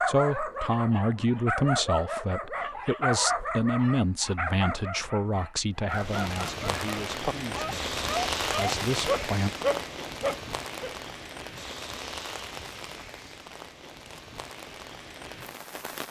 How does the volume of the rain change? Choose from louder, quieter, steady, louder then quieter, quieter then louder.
quieter.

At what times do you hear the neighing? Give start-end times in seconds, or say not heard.
not heard.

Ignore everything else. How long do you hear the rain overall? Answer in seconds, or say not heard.
10 s.